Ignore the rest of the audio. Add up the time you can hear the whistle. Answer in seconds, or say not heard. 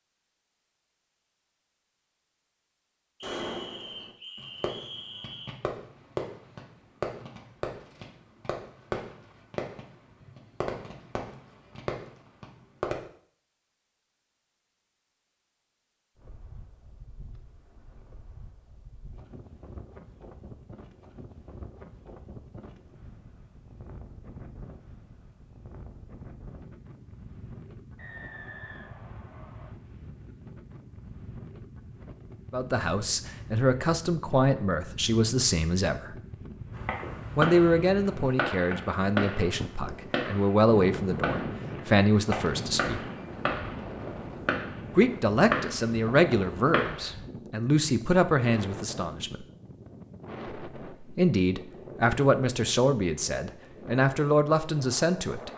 4 s.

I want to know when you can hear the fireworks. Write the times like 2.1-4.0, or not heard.
3.2-12.9, 36.8-47.1.